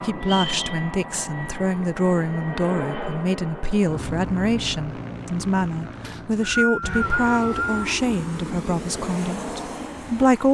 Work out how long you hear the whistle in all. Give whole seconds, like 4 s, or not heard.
2 s.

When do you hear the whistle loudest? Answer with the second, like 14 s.
7 s.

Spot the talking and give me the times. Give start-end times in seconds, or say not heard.
0.0-10.5.